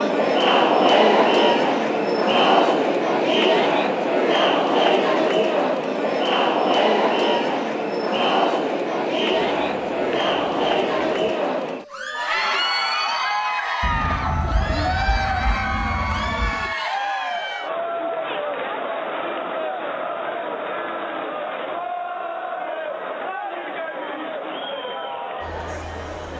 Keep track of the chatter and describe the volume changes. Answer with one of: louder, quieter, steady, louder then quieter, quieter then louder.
quieter.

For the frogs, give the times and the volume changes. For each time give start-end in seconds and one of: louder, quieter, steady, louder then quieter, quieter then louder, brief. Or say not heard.
not heard.